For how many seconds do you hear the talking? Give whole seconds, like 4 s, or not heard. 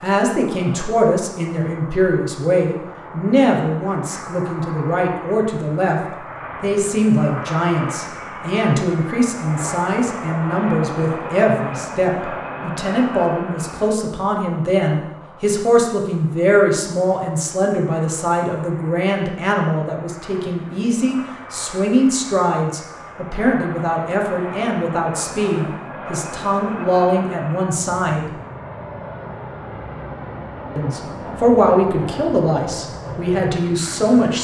31 s.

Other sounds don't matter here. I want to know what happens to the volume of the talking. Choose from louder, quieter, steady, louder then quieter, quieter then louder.
steady.